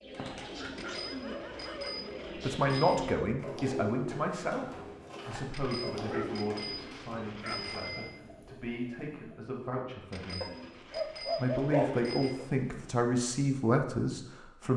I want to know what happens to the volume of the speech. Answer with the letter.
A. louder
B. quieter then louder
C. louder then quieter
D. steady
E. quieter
B.